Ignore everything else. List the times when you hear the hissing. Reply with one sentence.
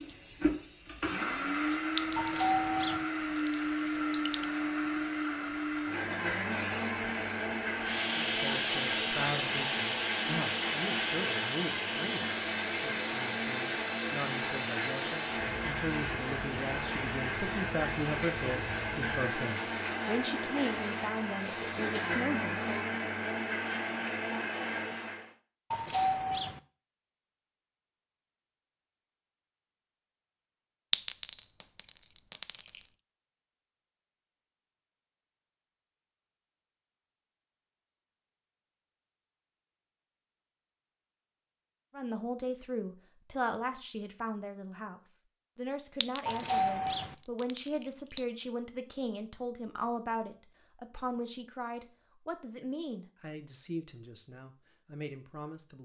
You can hear the hissing from 0.0 to 22.9 s.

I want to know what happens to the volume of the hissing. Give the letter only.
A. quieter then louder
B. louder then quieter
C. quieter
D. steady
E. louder
B.